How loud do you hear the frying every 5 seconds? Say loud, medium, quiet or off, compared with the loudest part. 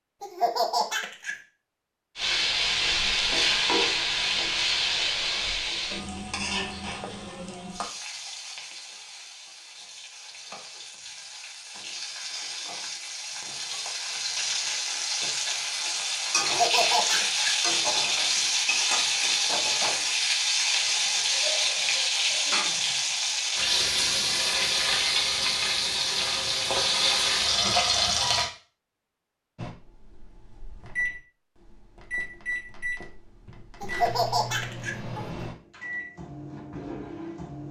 loud, medium, medium, loud, loud, loud, off, off.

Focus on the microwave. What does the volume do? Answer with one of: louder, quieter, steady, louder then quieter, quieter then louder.
steady.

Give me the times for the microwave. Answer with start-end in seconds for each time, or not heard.
29.6-37.6.